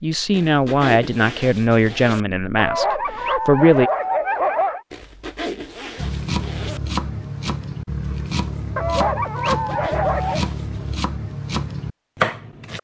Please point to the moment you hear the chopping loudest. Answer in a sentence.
The loudest moment of the chopping is at 12 seconds.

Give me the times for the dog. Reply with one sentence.
You can hear the dog from 2.5 to 4.8 s and from 8.8 to 10.4 s.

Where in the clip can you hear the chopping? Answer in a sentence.
The chopping can be heard from 6.0 to 12.7 s.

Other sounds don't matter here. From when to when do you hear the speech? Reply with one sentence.
The speech can be heard from 0.0 to 3.9 s.